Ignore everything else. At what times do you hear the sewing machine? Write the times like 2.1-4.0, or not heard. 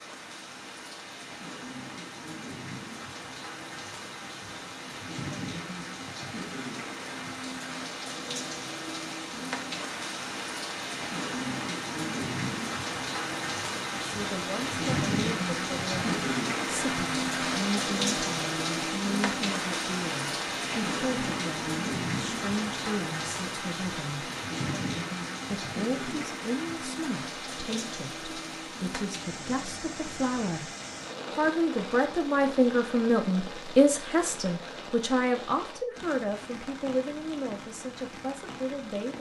not heard.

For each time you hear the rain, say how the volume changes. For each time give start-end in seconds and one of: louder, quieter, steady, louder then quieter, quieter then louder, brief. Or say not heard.
0.0-39.1 louder then quieter.